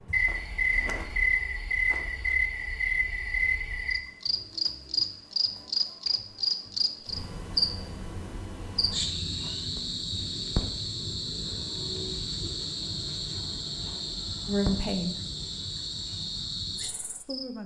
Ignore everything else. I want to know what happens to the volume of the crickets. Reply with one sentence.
The loudness of the crickets goes down.